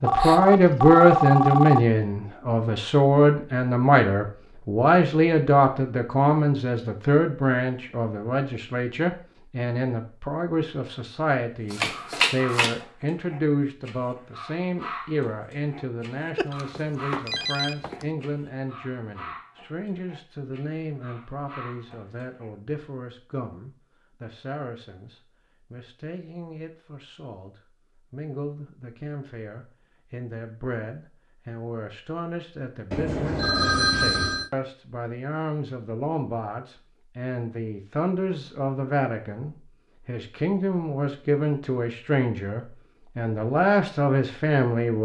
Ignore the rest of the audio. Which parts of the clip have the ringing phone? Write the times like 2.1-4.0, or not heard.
0.0-1.8, 16.4-18.1, 32.9-34.5.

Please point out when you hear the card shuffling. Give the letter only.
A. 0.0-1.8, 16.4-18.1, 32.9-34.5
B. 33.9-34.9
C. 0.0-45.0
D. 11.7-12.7
D.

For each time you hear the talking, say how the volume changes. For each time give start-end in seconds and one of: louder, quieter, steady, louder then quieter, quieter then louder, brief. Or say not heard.
0.0-45.0 quieter then louder.